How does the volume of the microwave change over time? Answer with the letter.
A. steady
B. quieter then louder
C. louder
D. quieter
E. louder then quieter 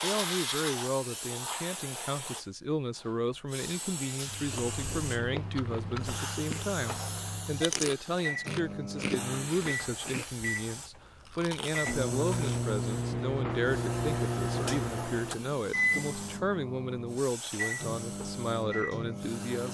E.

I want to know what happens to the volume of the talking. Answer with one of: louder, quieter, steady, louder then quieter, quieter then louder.
steady.